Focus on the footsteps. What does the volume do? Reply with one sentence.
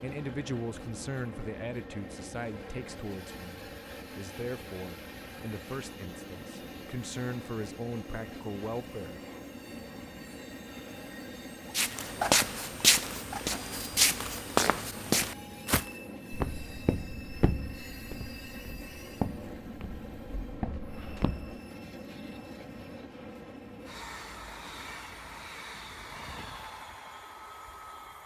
The volume of the footsteps goes down.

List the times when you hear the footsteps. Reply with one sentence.
You can hear the footsteps from 11.7 to 21.6 s.